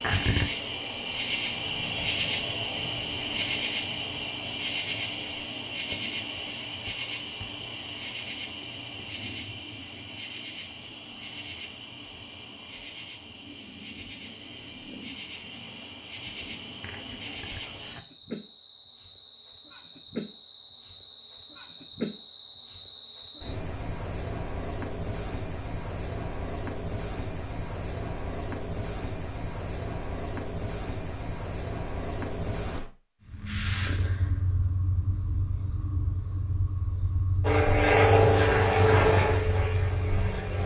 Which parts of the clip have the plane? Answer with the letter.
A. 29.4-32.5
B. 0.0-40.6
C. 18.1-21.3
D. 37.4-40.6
D.